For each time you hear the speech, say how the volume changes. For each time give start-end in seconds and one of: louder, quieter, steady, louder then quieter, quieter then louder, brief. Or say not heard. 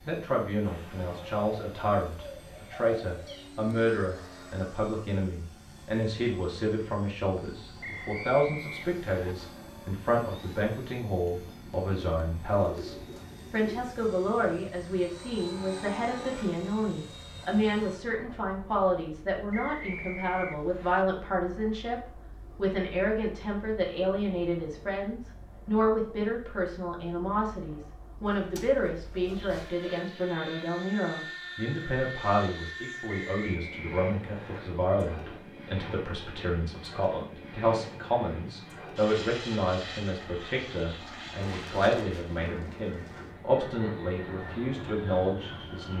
0.1-45.9 steady.